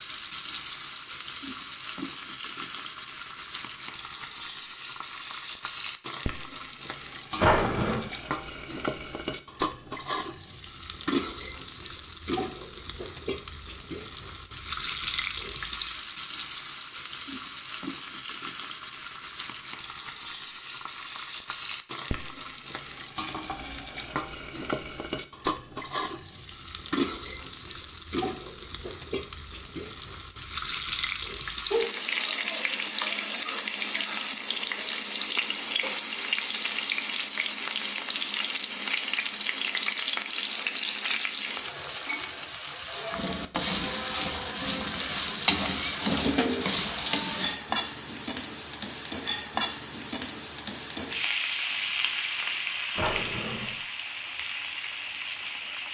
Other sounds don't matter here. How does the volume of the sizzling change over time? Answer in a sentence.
The volume of the sizzling stays about the same.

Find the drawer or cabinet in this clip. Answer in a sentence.
The drawer or cabinet can be heard from 7.3 to 8.1 s and from 53.0 to 53.8 s.